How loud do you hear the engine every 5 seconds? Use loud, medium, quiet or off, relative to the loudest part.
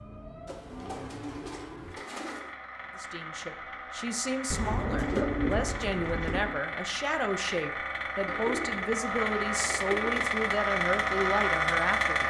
quiet, medium, loud.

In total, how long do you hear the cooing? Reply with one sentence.
The cooing can be heard for 6 seconds in total.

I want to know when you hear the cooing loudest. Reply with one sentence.
The loudest moment of the cooing is at 5 seconds.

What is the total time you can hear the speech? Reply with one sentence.
You can hear the speech for 9 seconds altogether.